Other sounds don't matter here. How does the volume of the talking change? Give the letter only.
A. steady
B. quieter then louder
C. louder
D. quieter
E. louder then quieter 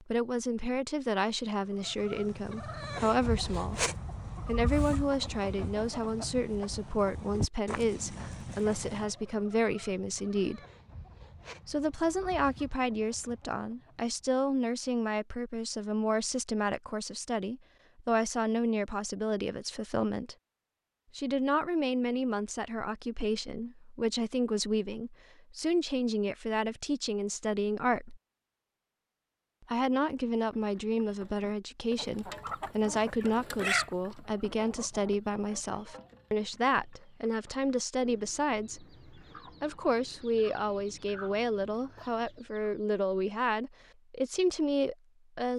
A.